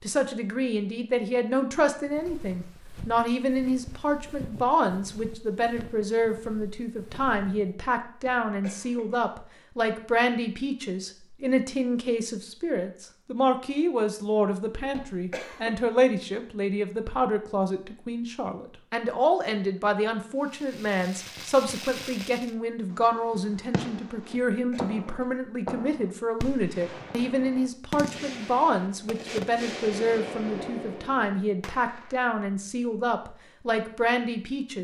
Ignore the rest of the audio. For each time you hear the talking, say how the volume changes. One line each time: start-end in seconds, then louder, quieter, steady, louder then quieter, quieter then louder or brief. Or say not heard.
0.0-34.7 steady.